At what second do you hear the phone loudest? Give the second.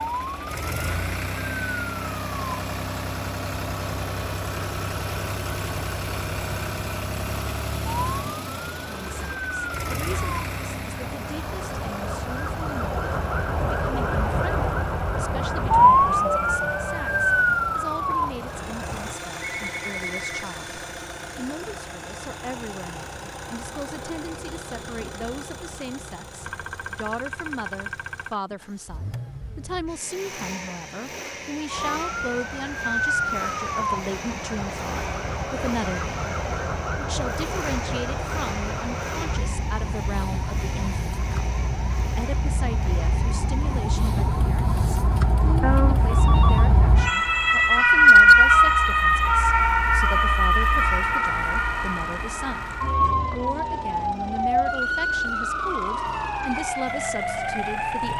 46 s.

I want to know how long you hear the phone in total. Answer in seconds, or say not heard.
3 s.